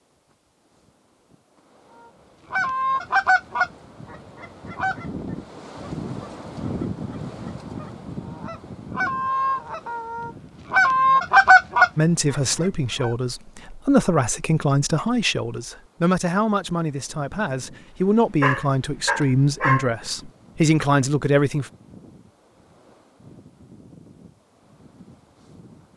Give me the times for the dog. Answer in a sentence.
You can hear the dog from 18.4 to 20.2 s.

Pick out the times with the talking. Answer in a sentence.
The talking can be heard from 11.9 to 21.7 s.